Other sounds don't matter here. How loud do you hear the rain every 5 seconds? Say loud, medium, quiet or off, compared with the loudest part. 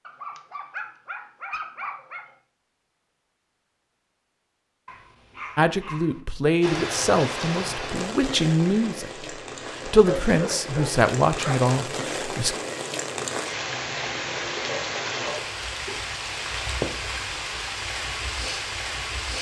off, loud, loud, loud.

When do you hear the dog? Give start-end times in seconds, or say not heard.
0.1-2.3, 4.8-6.2, 10.1-11.6, 14.7-16.0.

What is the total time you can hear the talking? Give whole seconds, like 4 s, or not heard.
7 s.